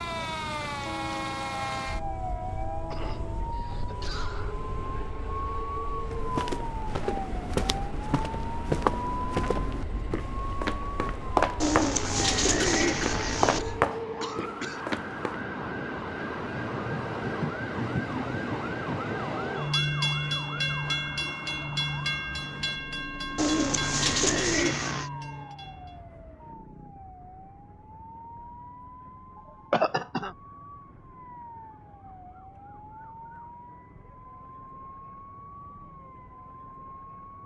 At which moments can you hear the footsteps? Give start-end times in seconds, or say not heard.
6.0-15.3.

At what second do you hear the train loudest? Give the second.
20 s.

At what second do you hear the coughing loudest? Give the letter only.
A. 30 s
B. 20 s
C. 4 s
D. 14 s
A.